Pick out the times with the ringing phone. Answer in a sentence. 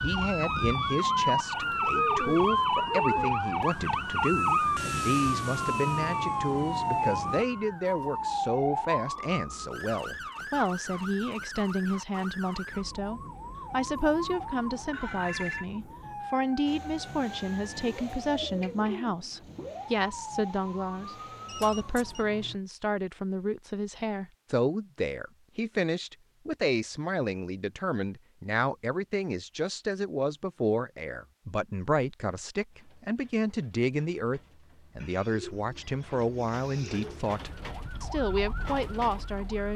You can hear the ringing phone from 14.9 to 15.7 s and from 21.4 to 22.2 s.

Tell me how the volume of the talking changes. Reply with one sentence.
The loudness of the talking stays about the same.